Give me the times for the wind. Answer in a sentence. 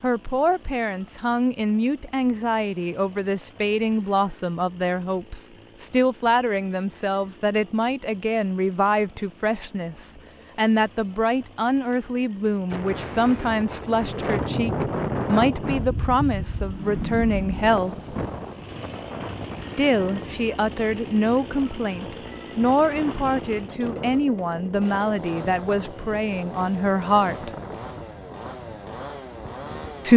You can hear the wind from 12.7 to 30.1 s.